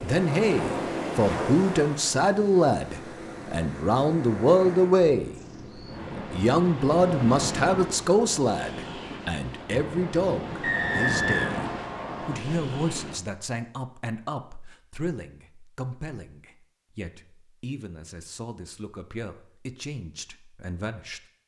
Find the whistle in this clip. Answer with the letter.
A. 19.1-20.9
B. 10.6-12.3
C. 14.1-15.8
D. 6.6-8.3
B.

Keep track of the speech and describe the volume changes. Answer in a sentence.
The volume of the speech goes down.